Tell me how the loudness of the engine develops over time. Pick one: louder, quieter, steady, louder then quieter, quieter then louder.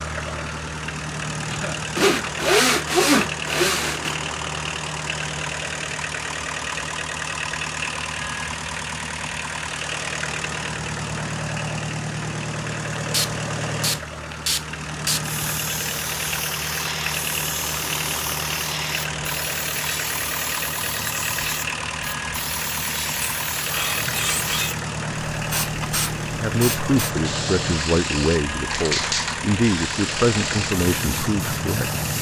steady.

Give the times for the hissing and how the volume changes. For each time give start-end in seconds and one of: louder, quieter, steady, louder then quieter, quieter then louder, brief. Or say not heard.
12.9-32.1 steady.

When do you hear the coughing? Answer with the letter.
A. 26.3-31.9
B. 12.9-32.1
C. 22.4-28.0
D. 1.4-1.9
D.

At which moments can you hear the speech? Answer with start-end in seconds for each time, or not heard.
26.3-31.9.